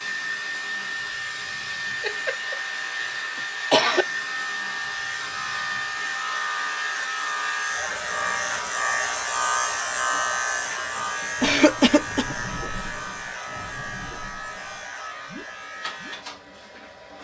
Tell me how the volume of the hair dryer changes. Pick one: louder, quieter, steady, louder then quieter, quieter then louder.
quieter.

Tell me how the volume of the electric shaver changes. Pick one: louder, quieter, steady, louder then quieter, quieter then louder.
louder then quieter.